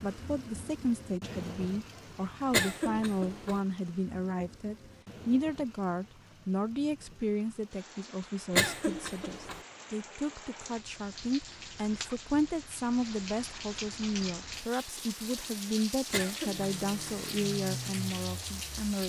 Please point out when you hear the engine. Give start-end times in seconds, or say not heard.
16.5-19.0.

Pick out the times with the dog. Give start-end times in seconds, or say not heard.
not heard.